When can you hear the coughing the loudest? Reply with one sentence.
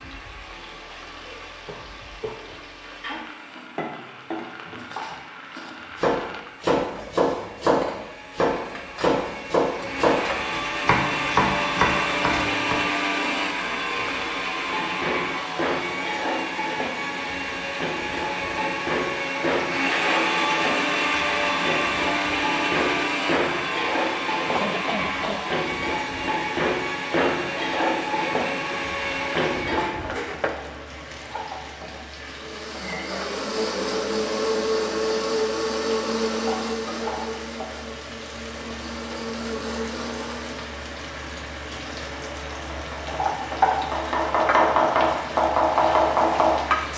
The loudest moment of the coughing is at 25 seconds.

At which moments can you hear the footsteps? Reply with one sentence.
You can't hear the footsteps here.